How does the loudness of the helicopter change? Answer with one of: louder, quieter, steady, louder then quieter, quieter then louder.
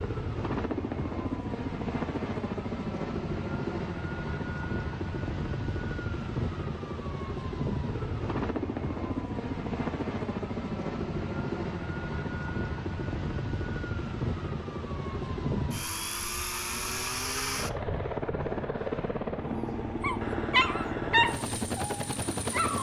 steady.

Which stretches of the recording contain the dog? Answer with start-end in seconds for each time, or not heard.
20.0-22.7.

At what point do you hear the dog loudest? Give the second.
21 s.